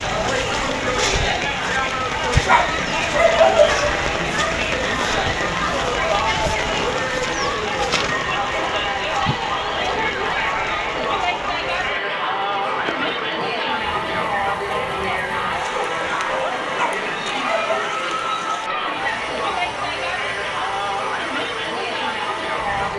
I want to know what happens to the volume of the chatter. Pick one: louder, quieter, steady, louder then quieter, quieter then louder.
steady.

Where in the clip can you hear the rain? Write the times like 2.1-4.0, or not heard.
0.0-22.9.